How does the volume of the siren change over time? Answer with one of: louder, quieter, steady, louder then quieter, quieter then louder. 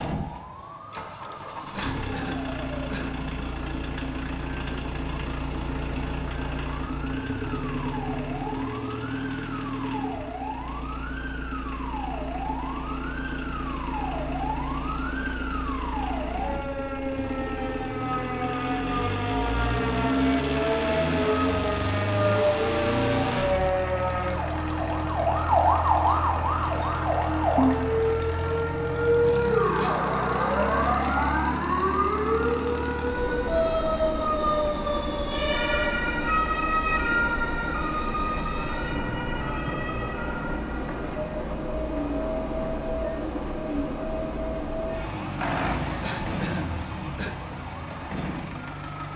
louder then quieter.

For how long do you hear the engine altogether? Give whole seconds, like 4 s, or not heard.
49 s.